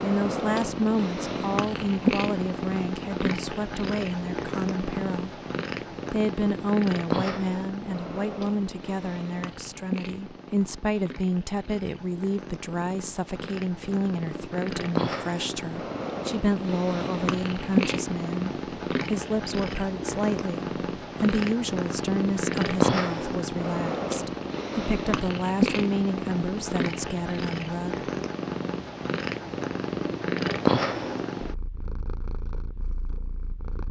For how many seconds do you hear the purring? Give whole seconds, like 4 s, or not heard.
34 s.